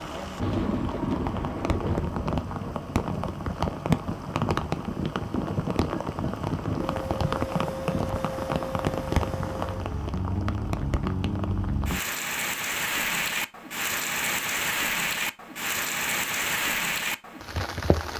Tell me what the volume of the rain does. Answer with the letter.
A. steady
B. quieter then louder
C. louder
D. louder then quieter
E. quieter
A.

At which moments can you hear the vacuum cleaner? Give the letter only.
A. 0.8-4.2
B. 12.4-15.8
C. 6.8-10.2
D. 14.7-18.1
C.